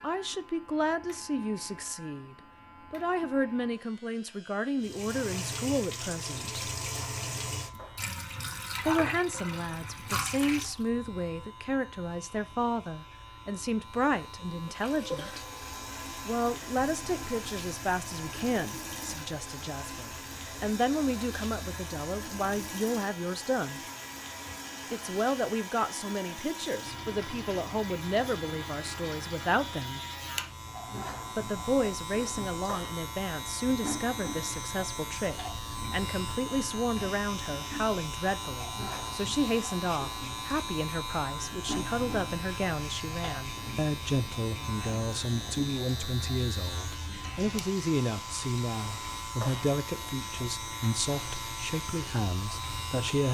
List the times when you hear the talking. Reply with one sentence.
The talking can be heard from 0.0 to 6.7 s, from 8.8 to 15.4 s, from 16.2 to 23.8 s, from 24.9 to 30.0 s and from 31.4 to 53.2 s.